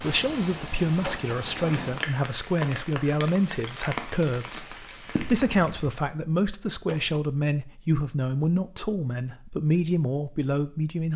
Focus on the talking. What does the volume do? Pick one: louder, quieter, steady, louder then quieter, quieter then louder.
steady.